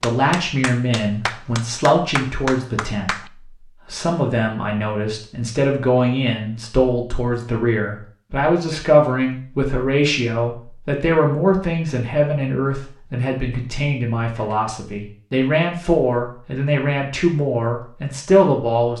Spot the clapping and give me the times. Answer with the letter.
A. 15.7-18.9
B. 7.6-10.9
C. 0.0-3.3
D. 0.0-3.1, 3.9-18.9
C.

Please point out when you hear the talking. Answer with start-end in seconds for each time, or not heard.
0.0-3.1, 3.9-18.9.